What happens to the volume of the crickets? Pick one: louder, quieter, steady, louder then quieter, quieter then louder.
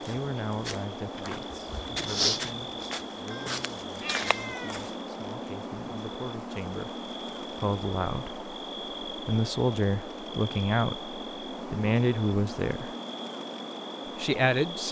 steady.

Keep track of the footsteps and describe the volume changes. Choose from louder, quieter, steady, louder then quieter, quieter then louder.
louder then quieter.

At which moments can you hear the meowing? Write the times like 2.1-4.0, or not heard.
3.3-4.8.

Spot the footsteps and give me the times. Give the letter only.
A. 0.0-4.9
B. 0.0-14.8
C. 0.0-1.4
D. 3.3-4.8
A.